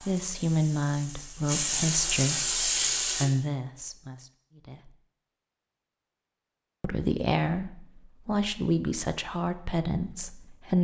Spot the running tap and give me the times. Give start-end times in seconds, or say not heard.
0.0-3.2.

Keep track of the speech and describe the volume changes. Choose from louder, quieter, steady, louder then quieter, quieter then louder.
steady.